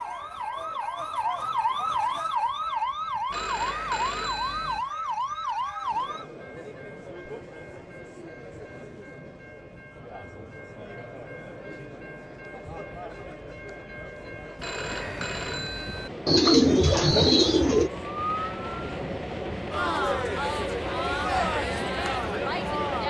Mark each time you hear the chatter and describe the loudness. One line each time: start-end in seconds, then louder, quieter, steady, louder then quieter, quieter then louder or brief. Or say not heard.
5.8-23.0 louder.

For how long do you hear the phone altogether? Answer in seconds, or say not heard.
3 s.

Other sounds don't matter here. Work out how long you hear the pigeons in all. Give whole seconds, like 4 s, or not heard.
2 s.